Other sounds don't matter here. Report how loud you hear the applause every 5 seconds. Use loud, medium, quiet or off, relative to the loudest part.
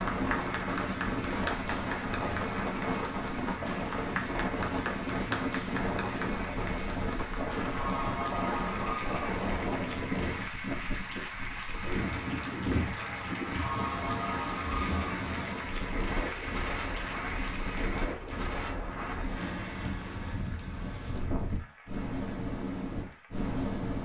loud, loud, loud, loud, quiet.